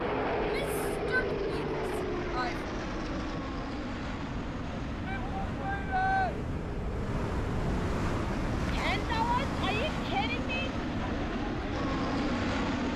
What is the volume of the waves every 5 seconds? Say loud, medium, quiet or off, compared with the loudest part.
medium, loud, medium.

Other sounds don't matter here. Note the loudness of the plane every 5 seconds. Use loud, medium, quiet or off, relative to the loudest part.
loud, medium, loud.